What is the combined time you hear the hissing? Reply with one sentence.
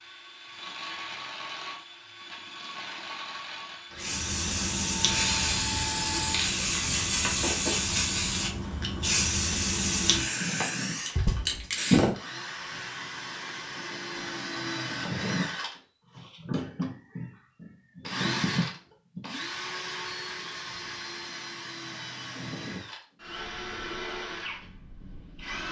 The hissing can be heard for 8 seconds in total.